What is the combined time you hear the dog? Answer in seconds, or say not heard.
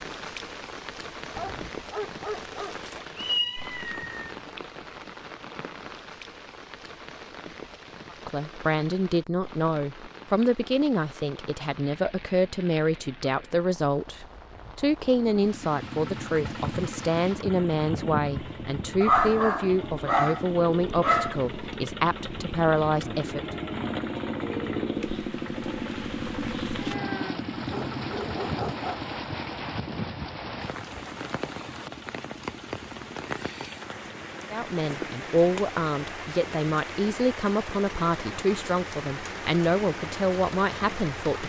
6 s.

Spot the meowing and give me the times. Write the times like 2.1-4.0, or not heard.
3.1-4.3.